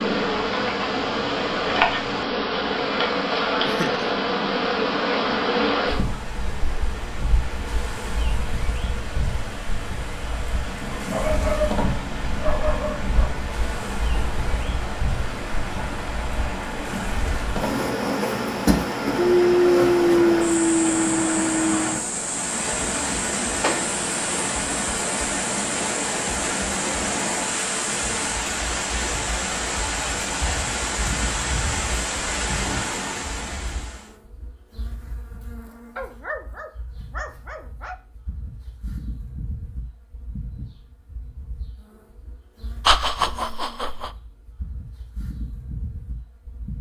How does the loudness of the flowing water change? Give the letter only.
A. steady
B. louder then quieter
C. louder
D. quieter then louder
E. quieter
C.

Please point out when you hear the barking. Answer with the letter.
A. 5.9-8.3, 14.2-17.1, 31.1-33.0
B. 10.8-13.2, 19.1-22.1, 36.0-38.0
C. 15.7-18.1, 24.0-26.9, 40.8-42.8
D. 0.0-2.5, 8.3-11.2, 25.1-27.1
B.